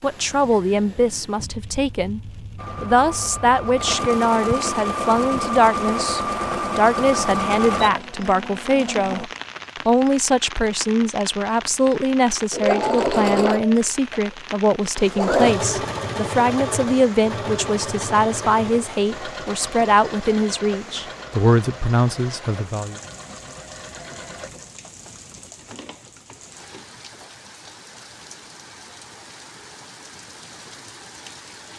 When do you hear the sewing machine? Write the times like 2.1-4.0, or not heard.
2.5-9.3, 12.5-28.2.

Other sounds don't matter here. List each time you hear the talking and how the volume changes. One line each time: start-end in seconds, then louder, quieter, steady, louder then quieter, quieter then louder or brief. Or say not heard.
0.0-2.2 brief
2.8-22.9 steady.